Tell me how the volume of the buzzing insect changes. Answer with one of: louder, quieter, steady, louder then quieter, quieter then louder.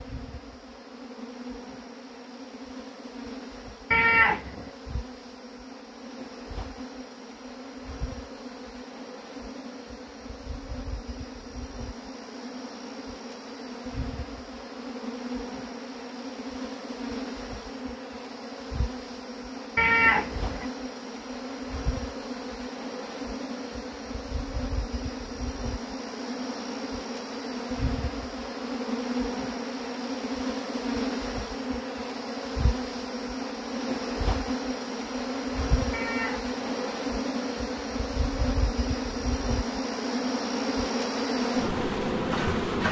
louder.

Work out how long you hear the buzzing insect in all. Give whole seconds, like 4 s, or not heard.
43 s.